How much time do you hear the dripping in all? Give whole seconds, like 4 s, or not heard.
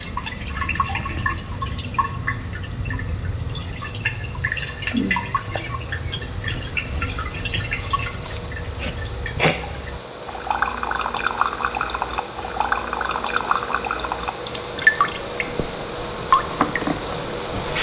18 s.